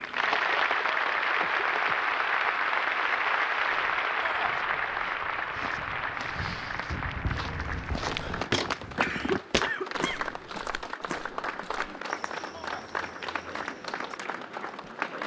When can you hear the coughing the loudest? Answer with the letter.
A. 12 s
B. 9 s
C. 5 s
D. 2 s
B.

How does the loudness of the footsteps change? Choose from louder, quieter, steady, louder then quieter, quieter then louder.
louder then quieter.